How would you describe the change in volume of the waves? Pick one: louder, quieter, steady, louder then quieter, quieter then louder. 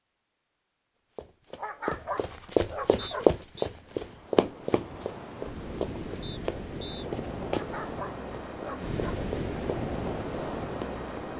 louder.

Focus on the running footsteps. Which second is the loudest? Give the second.
3 s.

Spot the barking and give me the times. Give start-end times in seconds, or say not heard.
1.6-3.4, 7.5-9.2.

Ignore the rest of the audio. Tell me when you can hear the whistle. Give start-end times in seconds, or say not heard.
3.0-3.7, 6.2-7.0.